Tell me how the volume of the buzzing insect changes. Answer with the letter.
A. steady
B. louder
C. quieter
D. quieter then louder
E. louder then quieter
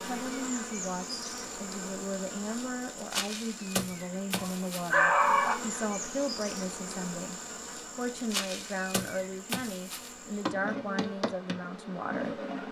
A.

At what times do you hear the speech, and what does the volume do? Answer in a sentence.
You can hear the speech from 0.0 to 12.6 s, at a steady volume.